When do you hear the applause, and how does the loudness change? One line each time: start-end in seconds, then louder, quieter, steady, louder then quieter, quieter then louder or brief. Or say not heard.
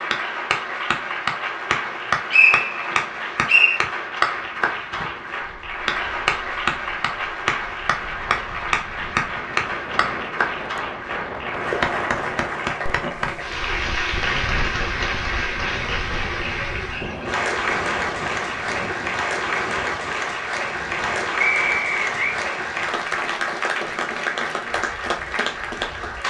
0.0-26.2 steady.